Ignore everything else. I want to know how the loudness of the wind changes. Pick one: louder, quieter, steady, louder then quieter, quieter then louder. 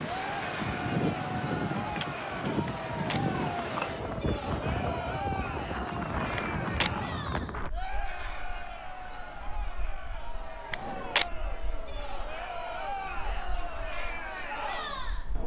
quieter.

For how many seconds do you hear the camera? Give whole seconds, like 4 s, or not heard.
2 s.